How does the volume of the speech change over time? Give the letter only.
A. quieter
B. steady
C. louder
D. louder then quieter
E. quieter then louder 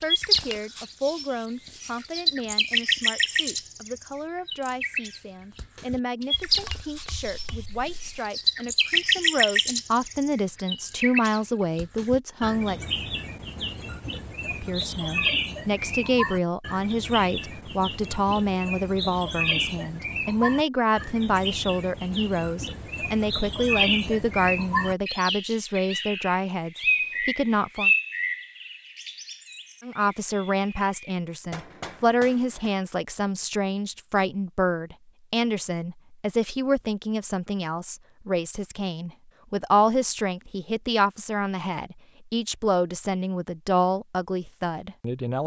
C.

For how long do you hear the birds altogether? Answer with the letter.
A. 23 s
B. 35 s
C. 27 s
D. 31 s
D.